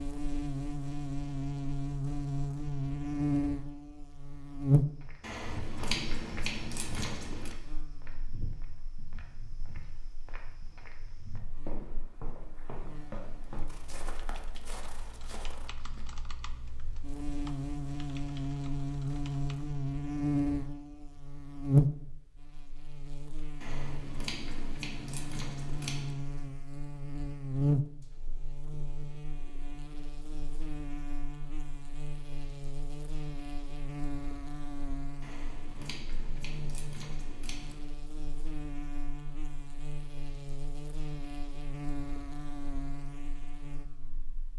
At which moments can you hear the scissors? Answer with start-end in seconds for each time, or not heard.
5.2-7.5, 23.6-26.1, 35.2-37.8.